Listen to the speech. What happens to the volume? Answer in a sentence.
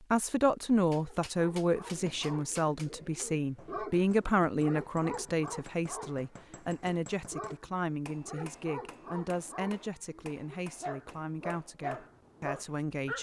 The volume of the speech goes down.